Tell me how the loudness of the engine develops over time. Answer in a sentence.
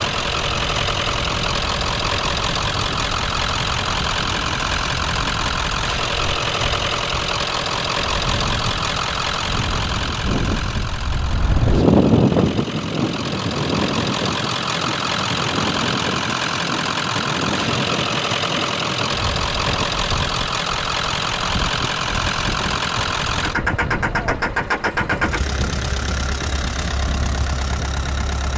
The loudness of the engine stays about the same.